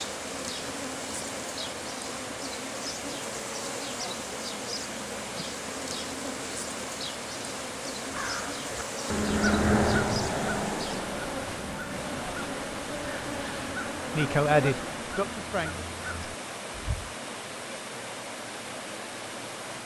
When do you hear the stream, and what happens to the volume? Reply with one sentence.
The stream can be heard from 0.0 to 19.8 s, at a steady volume.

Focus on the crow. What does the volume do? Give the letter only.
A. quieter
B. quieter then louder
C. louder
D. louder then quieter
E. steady
A.